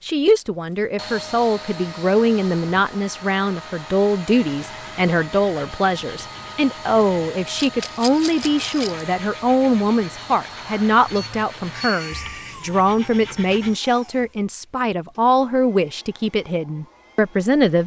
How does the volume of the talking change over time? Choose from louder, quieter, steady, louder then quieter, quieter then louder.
steady.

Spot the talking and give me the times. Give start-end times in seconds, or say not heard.
0.1-17.8.